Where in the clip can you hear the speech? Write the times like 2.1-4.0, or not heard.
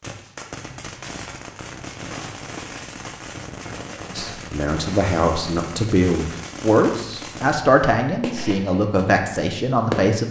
4.1-10.2.